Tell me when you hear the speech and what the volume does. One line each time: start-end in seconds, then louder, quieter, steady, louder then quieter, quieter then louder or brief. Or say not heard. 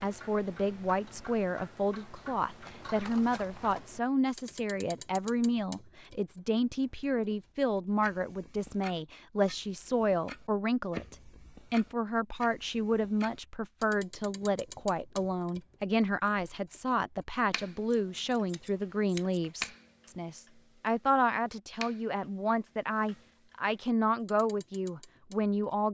0.0-25.8 steady.